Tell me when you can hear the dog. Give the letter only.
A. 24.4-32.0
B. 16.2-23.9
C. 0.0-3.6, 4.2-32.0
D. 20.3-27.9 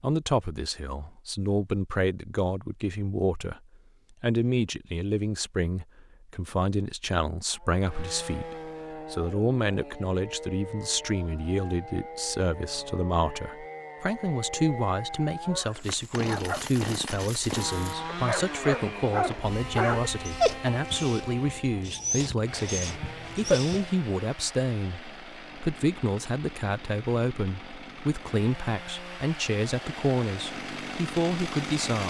B.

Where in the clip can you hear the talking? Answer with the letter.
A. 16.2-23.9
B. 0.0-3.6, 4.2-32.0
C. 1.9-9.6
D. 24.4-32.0
B.